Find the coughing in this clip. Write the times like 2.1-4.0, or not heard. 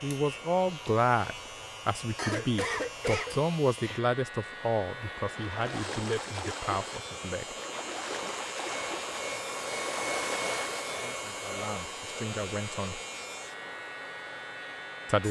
2.1-3.4.